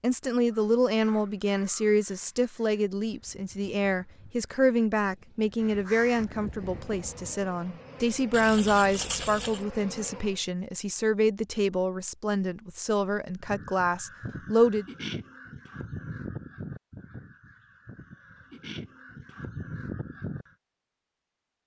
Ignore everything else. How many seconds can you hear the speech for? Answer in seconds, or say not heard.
15 s.